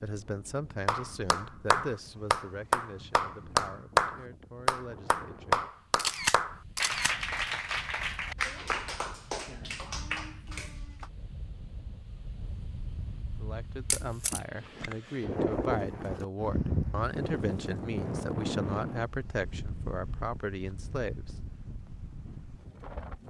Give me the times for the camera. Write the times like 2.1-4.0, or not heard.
6.0-7.2, 13.9-14.4.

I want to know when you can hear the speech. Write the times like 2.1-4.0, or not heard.
0.0-5.7, 13.4-21.4.